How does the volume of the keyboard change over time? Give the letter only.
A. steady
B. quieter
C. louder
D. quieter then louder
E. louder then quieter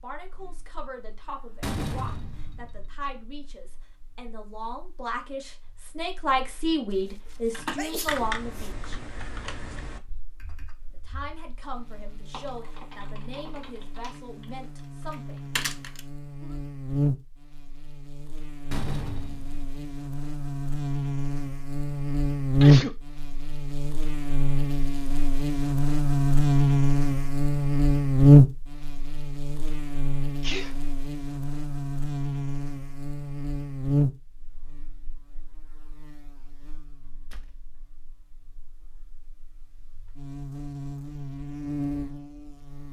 D.